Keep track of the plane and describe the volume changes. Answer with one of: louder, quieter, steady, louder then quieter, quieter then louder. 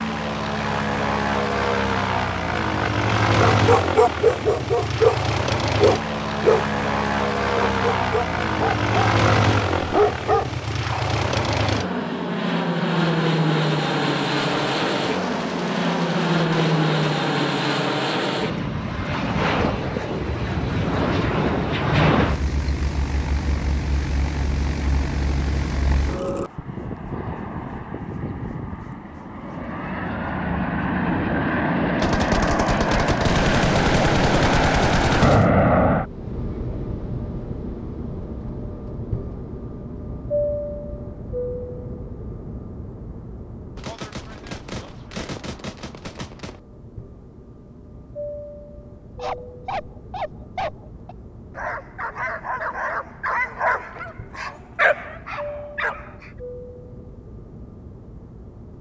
quieter.